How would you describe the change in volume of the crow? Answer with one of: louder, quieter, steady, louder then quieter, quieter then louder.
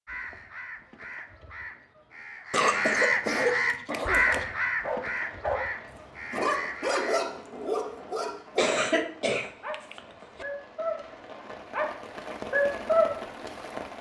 louder then quieter.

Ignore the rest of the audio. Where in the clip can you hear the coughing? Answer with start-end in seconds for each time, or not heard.
2.5-4.5, 8.6-10.4.